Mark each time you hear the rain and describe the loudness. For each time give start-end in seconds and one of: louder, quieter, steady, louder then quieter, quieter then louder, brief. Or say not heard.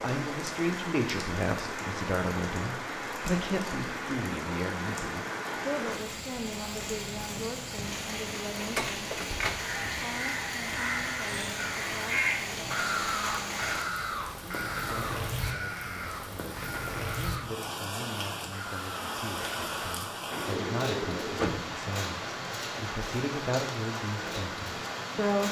0.0-25.4 steady.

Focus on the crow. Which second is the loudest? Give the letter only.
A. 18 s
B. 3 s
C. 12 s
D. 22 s
C.